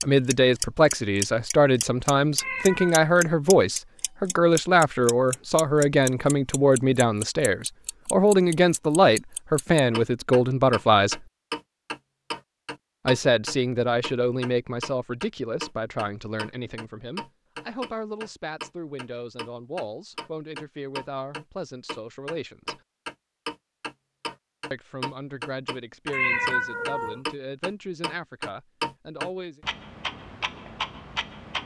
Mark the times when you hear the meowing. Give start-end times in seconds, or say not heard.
2.4-3.0, 26.1-27.2.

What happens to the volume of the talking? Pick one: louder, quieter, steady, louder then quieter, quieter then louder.
quieter.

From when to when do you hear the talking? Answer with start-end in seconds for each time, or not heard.
0.0-11.2, 13.1-22.8, 24.7-29.6.